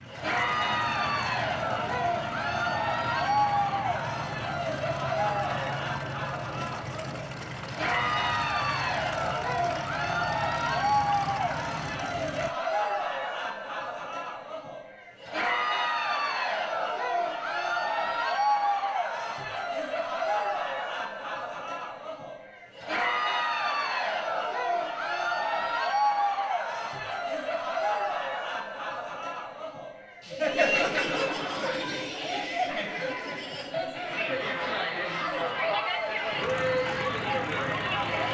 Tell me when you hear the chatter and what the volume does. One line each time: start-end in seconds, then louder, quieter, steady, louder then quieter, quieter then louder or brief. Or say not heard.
0.0-38.2 steady.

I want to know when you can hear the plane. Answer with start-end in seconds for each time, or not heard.
0.0-12.5, 36.4-38.2.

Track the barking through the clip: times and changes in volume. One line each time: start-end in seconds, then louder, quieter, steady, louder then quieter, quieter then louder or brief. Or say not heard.
not heard.